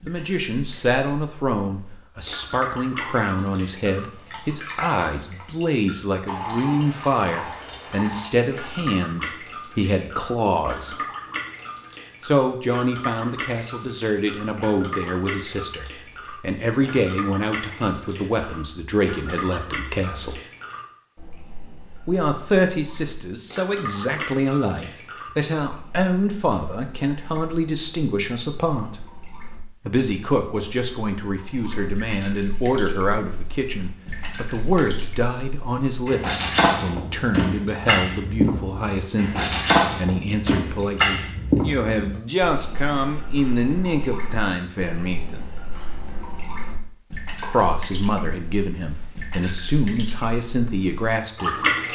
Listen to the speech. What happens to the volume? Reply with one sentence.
The volume of the speech stays about the same.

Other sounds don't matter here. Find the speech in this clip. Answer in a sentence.
You can hear the speech from 0.0 to 10.9 s, from 12.2 to 20.4 s, from 22.1 to 28.9 s, from 29.9 to 45.5 s and from 47.4 to 51.9 s.